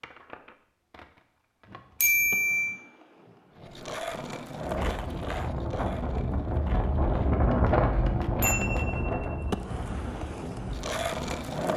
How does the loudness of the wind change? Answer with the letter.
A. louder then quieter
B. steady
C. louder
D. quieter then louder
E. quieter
A.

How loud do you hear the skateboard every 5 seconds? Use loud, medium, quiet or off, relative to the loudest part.
medium, medium, loud.